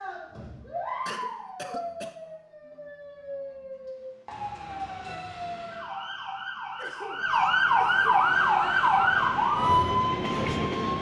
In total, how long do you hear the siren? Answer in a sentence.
You can hear the siren for 11 seconds altogether.